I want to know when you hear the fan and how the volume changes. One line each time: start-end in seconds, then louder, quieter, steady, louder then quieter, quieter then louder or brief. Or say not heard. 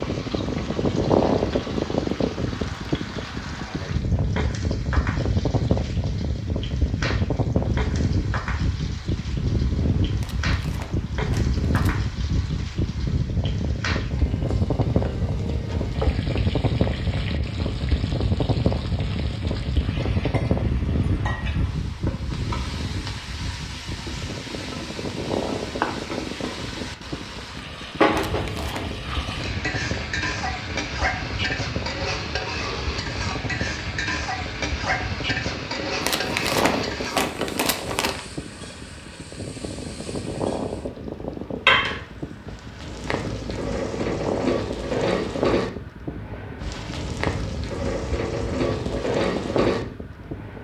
0.0-50.5 quieter.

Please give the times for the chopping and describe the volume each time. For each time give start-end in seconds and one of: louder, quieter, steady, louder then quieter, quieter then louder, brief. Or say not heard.
not heard.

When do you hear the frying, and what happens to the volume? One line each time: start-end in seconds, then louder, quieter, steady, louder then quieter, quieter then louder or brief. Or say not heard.
0.0-50.5 louder.